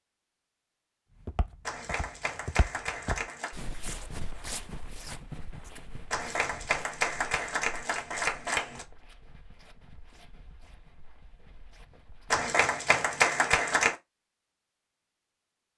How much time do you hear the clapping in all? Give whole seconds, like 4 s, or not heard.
6 s.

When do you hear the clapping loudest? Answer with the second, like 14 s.
13 s.